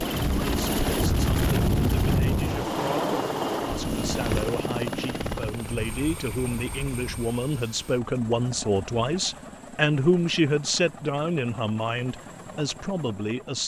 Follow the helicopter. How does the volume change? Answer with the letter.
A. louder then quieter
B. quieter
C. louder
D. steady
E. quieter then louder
B.